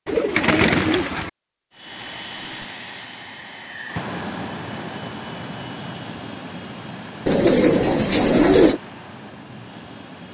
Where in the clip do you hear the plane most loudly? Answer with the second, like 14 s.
4 s.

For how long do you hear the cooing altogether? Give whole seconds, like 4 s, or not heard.
3 s.